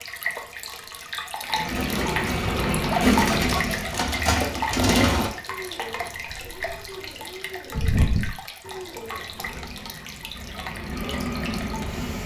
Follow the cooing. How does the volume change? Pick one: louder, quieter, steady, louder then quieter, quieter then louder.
quieter then louder.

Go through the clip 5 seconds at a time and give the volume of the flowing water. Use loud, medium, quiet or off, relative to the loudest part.
loud, medium, medium.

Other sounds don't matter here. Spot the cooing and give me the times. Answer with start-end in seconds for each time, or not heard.
1.6-9.6.